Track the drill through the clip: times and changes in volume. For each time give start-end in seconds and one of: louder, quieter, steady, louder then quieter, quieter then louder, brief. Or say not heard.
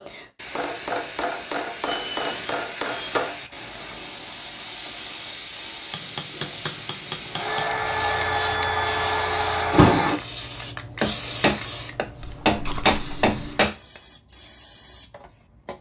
1.8-10.2 quieter then louder.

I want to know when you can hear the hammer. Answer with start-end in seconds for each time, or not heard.
0.6-3.4, 5.9-7.7, 11.0-14.0.